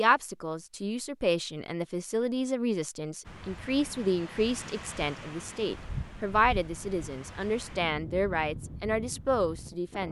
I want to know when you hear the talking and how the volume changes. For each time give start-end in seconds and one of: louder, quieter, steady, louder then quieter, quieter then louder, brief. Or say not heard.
0.0-10.0 steady.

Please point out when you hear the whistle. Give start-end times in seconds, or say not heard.
not heard.